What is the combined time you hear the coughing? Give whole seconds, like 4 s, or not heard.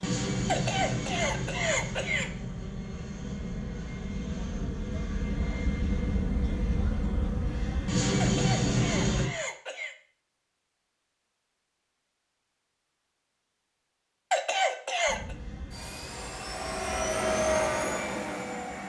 5 s.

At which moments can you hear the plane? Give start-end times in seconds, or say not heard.
0.0-9.3, 15.1-18.8.